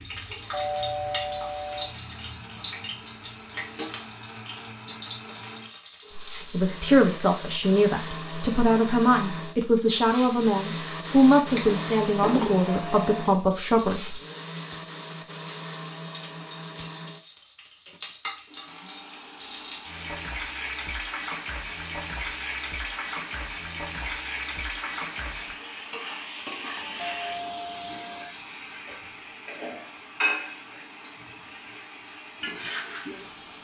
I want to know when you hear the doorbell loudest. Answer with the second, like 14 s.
1 s.